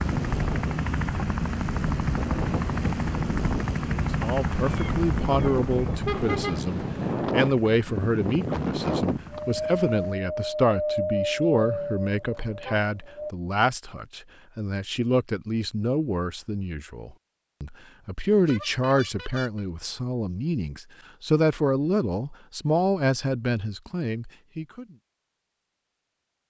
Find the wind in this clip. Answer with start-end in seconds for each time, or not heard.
0.0-13.3.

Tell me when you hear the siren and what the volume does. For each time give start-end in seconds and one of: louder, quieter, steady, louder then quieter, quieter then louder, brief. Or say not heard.
not heard.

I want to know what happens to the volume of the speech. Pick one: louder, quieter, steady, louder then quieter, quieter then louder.
steady.